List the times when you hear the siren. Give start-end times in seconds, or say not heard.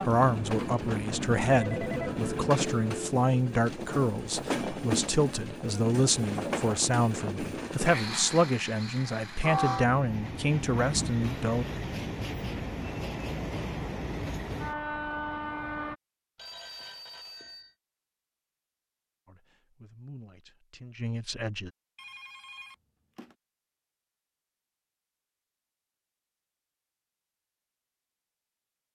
not heard.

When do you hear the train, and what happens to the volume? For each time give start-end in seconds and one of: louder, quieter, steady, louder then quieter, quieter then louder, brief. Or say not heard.
0.0-15.9 steady.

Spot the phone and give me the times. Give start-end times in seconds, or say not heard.
1.5-3.0, 16.4-17.8, 21.9-23.4.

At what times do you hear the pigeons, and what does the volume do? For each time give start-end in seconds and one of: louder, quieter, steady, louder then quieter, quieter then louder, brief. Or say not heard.
not heard.